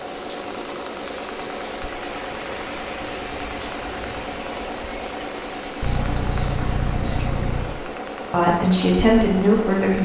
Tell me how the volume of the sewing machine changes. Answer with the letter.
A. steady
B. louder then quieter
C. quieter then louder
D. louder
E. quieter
A.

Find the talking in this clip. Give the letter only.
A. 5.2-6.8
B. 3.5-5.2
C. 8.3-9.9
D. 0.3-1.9
C.